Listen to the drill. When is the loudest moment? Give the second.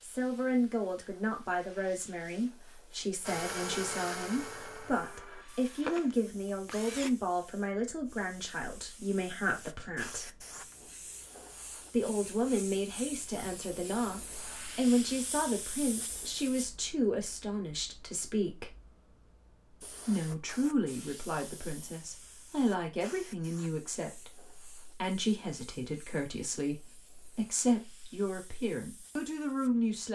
4 s.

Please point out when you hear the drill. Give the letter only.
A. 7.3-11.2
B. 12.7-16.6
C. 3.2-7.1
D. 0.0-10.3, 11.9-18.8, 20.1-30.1
C.